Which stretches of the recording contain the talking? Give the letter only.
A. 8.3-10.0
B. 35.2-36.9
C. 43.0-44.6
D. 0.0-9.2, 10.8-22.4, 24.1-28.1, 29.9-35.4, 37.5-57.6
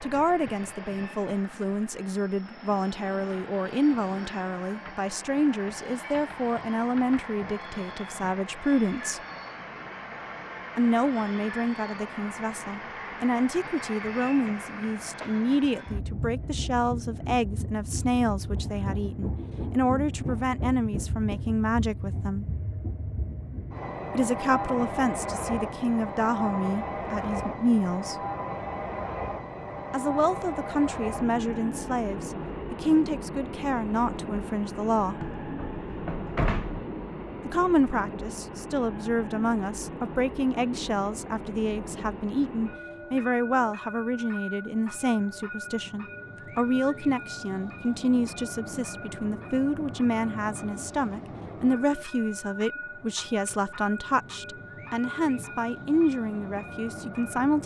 D.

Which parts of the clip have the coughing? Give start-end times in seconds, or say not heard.
not heard.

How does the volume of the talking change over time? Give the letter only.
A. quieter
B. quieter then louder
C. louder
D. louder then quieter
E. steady
E.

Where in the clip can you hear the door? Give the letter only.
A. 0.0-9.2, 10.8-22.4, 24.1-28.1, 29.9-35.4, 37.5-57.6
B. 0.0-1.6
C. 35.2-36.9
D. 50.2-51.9
C.